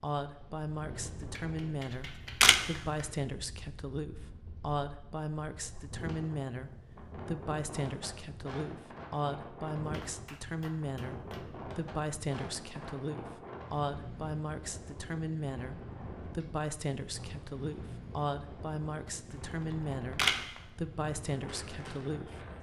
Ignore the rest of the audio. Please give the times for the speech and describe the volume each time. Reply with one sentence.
You can hear the speech from 0.0 to 22.4 s, at a steady volume.